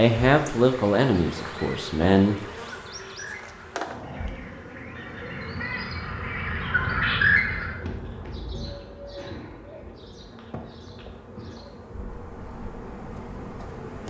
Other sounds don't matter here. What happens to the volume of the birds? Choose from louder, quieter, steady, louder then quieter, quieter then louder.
louder then quieter.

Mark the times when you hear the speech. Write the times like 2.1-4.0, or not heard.
0.0-2.4.